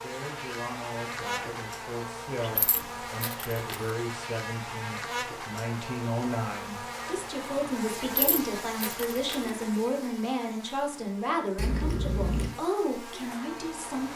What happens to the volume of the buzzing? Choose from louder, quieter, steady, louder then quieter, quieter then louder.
quieter.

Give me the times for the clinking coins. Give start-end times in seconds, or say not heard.
2.4-3.9, 8.0-9.5.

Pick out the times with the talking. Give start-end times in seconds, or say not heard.
0.0-14.1.